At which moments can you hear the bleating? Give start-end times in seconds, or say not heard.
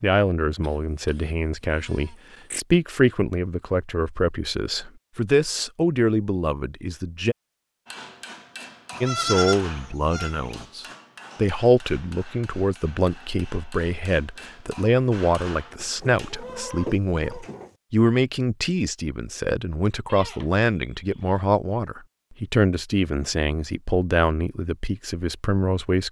0.6-2.6, 8.9-10.7, 15.8-17.8, 20.1-21.4.